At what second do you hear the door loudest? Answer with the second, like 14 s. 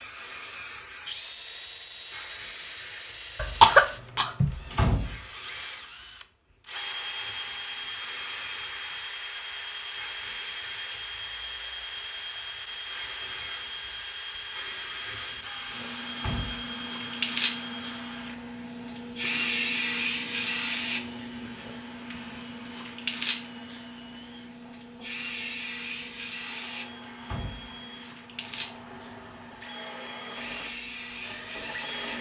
5 s.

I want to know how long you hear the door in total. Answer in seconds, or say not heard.
2 s.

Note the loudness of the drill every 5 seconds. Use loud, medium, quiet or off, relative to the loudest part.
loud, loud, loud, loud, quiet, medium, loud.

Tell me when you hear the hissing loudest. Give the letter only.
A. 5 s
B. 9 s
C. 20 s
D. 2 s
C.